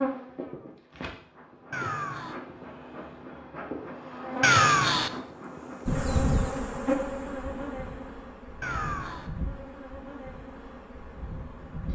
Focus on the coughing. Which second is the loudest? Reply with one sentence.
The volume of the coughing peaks at 5 seconds.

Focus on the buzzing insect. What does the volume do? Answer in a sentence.
The loudness of the buzzing insect goes up, then down.